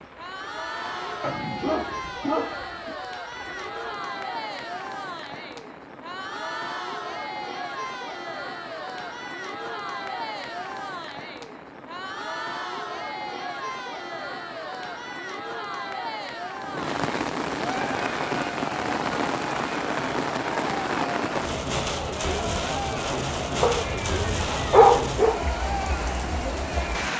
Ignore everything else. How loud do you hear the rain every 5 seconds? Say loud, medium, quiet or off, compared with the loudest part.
quiet, quiet, quiet, loud, loud, loud.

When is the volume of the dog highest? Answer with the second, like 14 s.
25 s.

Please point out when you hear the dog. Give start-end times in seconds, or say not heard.
1.2-3.0, 23.6-25.4.